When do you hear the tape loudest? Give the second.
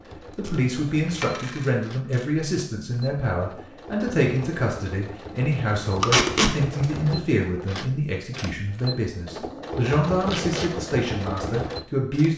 6 s.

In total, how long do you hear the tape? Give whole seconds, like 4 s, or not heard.
3 s.